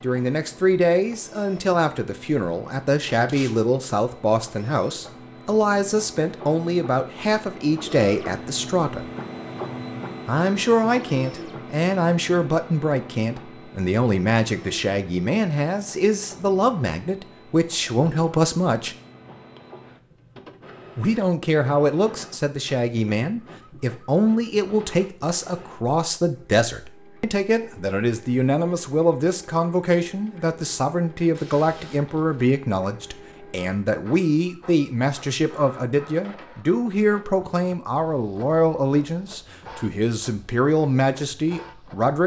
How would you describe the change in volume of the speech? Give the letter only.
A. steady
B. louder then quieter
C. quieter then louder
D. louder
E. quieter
A.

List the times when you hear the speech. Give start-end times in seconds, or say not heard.
0.0-9.1, 10.2-18.9, 20.9-42.2.